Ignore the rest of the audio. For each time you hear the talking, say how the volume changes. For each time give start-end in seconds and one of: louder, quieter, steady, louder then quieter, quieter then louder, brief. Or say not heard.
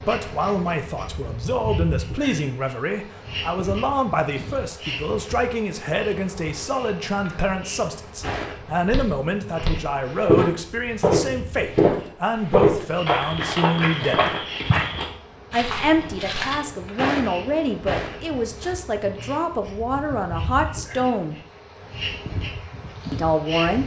0.0-14.4 steady
15.5-21.4 steady
23.1-23.8 brief.